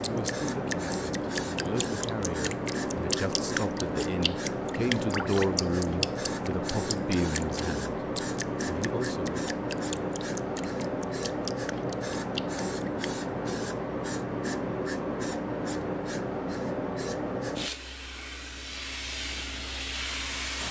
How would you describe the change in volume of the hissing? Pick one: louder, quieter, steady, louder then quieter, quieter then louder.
steady.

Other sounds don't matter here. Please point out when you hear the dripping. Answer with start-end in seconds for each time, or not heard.
0.0-13.1.